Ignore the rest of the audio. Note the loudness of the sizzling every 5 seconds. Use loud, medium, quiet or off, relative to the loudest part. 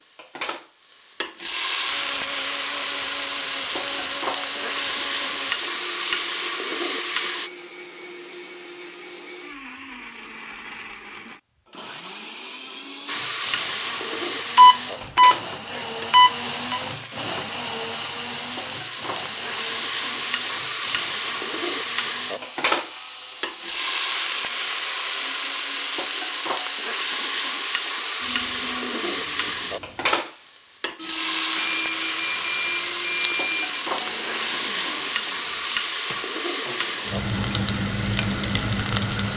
loud, loud, loud, medium, loud, loud, loud, loud.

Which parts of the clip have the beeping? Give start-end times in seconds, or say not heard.
14.6-16.8, 31.6-33.8.